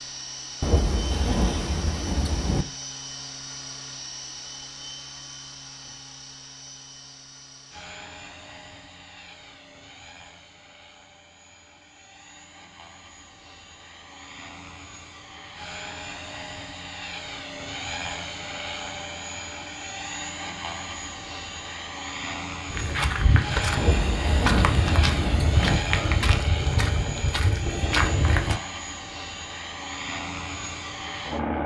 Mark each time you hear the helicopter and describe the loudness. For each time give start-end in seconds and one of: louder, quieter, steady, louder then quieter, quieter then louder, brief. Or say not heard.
0.0-31.6 quieter then louder.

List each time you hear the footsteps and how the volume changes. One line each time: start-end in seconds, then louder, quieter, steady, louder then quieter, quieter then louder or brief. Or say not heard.
22.7-28.6 steady.